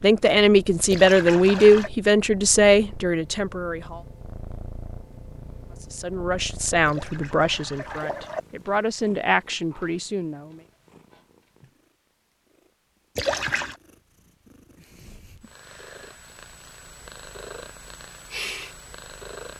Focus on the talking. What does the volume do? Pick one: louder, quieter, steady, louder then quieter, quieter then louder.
quieter.